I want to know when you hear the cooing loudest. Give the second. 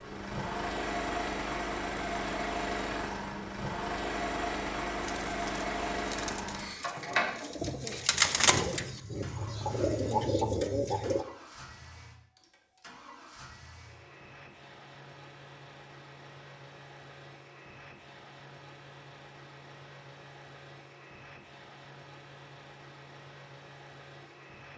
8 s.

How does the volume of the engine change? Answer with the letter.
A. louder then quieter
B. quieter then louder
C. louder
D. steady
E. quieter
E.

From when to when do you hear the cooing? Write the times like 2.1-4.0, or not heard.
5.0-11.2.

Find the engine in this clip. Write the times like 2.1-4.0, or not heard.
0.0-24.7.